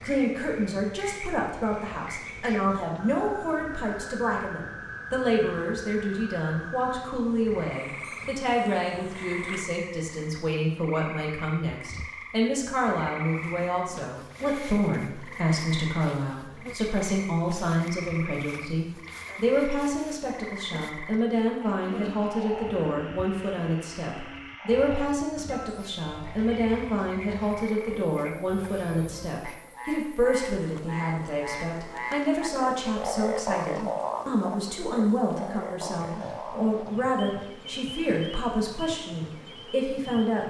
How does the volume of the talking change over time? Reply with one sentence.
The volume of the talking stays about the same.